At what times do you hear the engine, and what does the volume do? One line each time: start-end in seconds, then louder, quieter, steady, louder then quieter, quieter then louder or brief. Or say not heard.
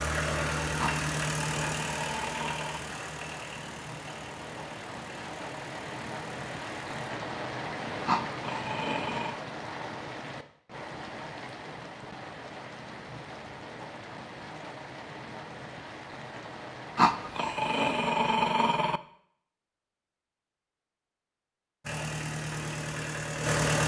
0.0-6.8 quieter
21.8-23.8 brief.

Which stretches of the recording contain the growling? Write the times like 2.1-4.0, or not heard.
0.8-2.8, 8.1-9.3, 16.9-19.0.